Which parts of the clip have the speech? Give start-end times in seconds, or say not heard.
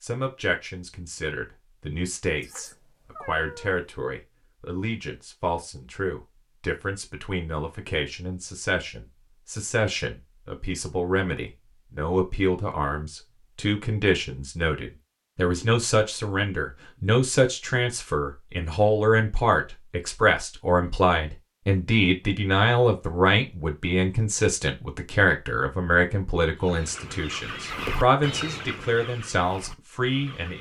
0.0-30.5.